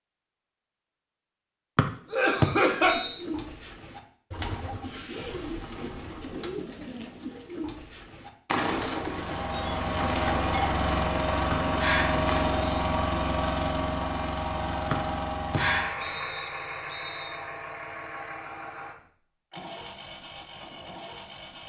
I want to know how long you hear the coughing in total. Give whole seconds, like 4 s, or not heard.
2 s.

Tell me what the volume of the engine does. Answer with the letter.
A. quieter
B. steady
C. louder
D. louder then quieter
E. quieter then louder
A.